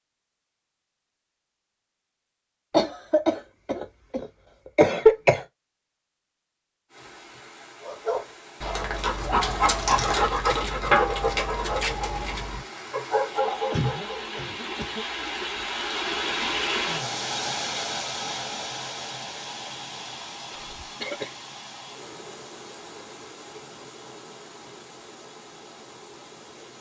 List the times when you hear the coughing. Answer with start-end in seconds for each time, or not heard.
2.7-5.5, 13.7-15.1, 20.5-21.4.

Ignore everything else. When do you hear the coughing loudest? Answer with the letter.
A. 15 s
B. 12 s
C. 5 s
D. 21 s
C.